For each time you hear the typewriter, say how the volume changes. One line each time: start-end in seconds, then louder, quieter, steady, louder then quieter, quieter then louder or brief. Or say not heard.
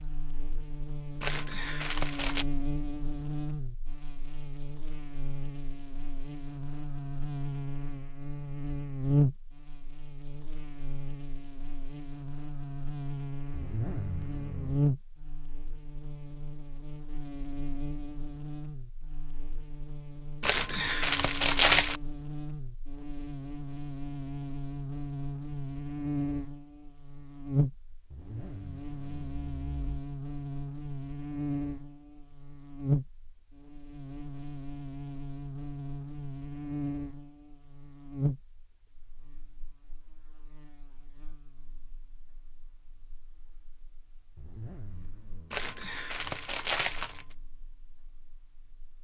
not heard.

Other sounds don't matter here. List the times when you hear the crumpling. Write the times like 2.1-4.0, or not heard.
1.2-2.5, 20.4-22.0, 45.5-47.4.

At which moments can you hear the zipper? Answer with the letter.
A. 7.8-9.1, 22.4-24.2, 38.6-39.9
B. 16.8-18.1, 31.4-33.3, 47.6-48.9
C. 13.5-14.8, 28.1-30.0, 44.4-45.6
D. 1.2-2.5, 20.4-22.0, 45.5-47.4
C.